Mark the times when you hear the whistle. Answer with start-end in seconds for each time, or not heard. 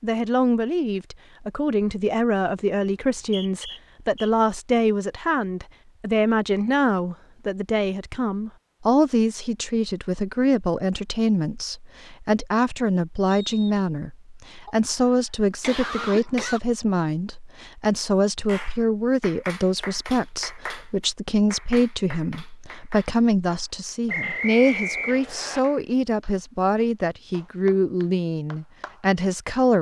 3.0-4.3, 13.3-13.8, 24.1-25.6.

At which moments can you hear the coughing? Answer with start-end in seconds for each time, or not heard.
14.7-16.6.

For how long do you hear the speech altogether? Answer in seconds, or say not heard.
30 s.